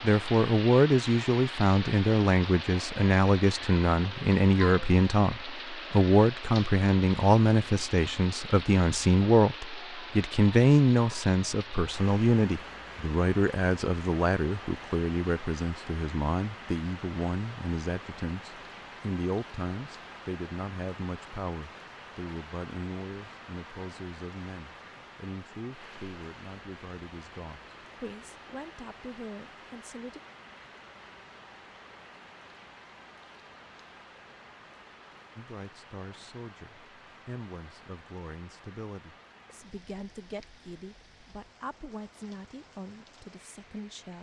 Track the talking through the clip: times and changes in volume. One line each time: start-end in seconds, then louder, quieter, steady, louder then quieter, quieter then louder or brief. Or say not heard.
0.0-30.2 quieter
35.4-44.1 steady.